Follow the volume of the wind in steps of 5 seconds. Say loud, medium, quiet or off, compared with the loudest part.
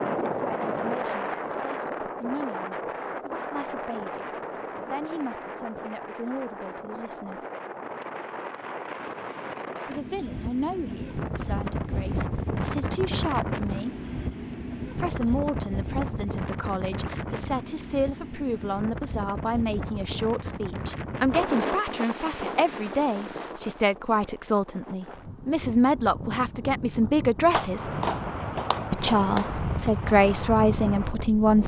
loud, medium, loud, loud, loud, loud, loud.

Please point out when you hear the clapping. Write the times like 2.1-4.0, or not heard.
27.5-29.5.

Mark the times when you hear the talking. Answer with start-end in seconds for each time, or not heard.
0.0-7.5, 9.8-13.9, 14.9-27.9, 28.9-31.6.